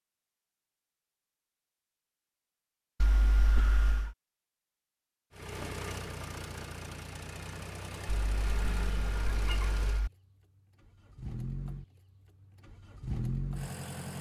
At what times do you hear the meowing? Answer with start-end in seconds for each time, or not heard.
3.0-4.2, 8.2-10.1.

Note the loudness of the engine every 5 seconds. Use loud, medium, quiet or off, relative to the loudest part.
off, loud, loud.